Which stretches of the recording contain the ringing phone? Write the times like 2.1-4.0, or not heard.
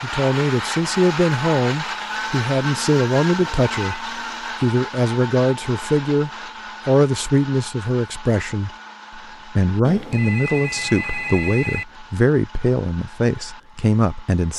3.4-4.0, 9.8-11.8.